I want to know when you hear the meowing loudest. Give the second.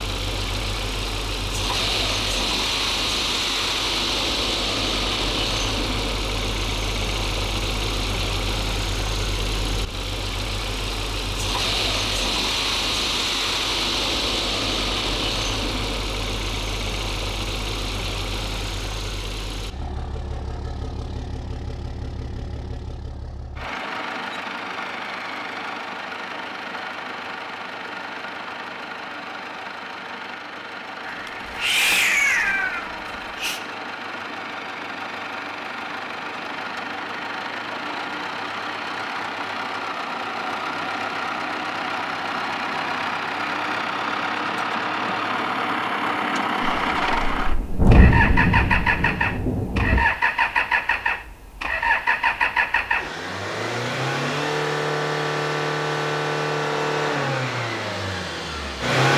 32 s.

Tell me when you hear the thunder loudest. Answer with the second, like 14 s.
48 s.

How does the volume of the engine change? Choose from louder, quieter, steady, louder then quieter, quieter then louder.
quieter then louder.